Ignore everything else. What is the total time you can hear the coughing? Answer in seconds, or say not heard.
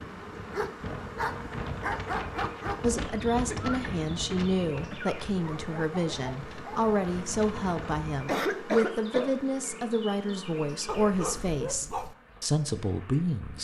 3 s.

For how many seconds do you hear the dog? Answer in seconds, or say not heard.
5 s.